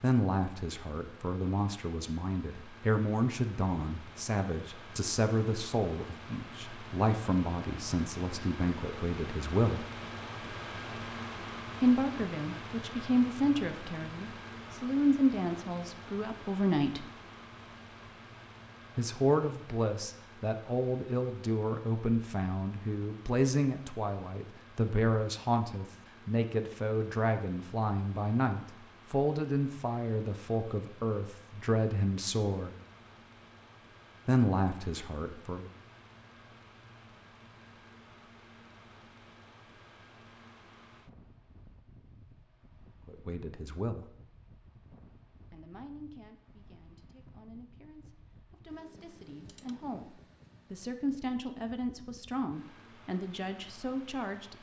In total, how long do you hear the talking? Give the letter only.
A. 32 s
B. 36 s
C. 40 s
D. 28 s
C.